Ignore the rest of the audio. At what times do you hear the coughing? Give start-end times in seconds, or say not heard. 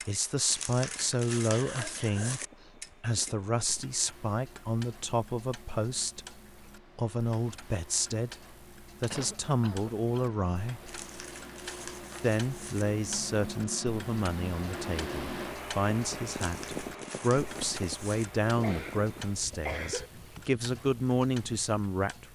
1.5-2.8, 9.1-10.4, 18.6-20.1.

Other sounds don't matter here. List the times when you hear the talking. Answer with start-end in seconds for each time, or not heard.
0.1-2.4, 3.0-6.2, 7.0-10.9, 12.2-22.3.